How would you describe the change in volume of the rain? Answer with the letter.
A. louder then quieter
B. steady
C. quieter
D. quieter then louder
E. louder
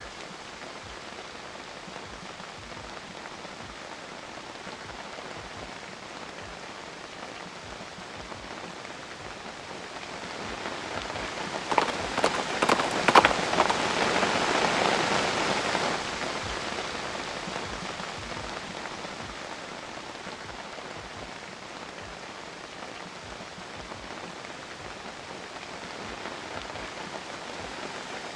A.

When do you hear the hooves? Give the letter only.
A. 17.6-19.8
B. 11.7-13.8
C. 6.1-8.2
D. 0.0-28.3
B.